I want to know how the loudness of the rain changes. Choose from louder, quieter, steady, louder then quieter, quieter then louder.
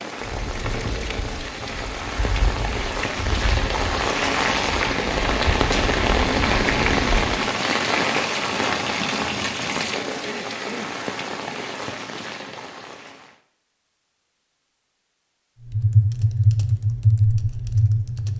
louder then quieter.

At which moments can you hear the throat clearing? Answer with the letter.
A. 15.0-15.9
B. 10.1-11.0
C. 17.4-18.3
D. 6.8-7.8
B.